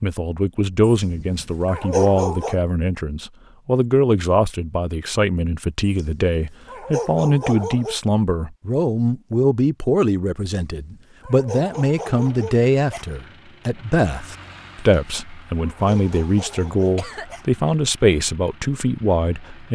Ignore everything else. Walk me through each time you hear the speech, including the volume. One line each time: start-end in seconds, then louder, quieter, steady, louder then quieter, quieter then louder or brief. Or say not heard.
0.0-19.6 steady.